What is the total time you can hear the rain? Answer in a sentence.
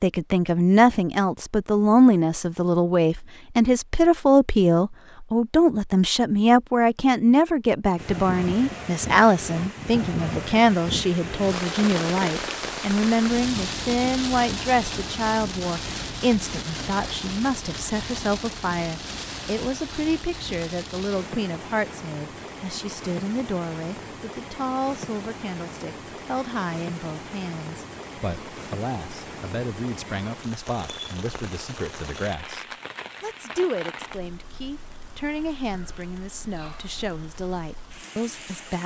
The rain can be heard for 31 seconds in total.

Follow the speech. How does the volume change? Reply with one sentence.
The loudness of the speech goes down.